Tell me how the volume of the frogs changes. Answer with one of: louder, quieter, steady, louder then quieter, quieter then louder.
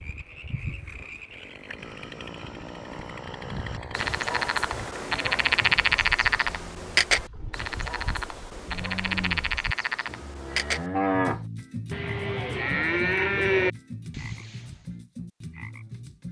louder then quieter.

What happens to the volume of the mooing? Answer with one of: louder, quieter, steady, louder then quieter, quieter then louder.
louder.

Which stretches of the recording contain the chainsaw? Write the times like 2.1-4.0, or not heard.
0.0-5.8.